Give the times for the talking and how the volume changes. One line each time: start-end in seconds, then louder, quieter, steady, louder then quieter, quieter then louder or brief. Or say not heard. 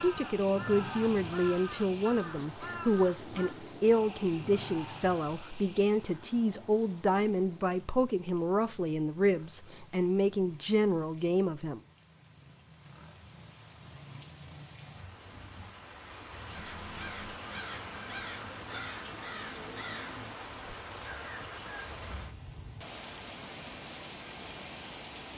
0.0-11.8 steady.